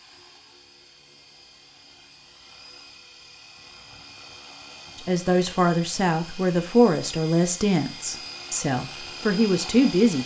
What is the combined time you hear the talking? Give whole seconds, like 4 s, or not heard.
5 s.